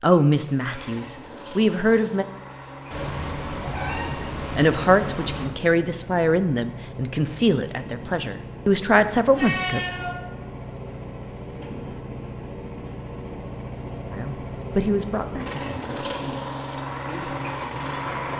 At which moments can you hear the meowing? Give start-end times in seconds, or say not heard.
2.9-5.5, 9.3-10.2.